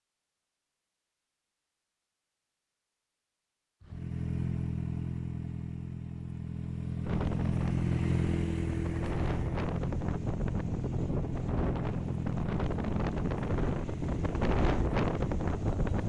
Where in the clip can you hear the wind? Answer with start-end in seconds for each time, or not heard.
7.0-16.0.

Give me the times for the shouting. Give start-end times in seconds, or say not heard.
not heard.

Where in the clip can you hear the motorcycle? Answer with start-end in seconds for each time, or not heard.
3.8-16.0.